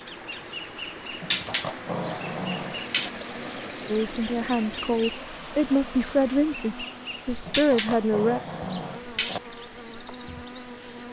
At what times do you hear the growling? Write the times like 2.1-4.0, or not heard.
1.2-3.1, 7.5-9.4.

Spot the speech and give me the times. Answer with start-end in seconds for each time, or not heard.
3.9-8.4.